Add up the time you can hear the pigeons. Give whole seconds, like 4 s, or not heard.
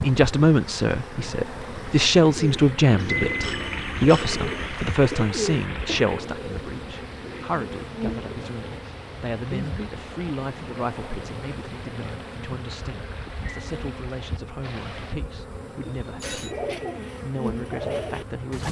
9 s.